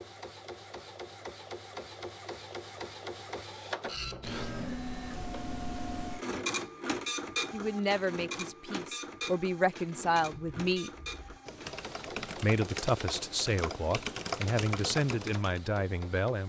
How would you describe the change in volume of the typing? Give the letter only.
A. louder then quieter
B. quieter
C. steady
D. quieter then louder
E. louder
E.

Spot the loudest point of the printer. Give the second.
7 s.